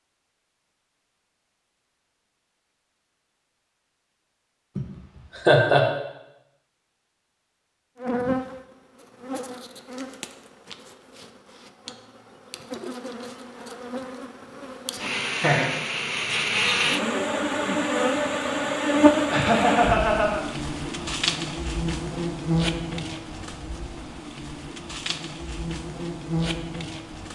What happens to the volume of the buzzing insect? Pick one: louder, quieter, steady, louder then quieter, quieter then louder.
louder then quieter.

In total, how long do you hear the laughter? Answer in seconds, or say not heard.
3 s.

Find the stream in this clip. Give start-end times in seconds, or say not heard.
not heard.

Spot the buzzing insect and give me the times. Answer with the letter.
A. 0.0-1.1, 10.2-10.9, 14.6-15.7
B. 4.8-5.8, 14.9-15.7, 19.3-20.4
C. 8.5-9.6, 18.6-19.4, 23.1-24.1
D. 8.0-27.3
D.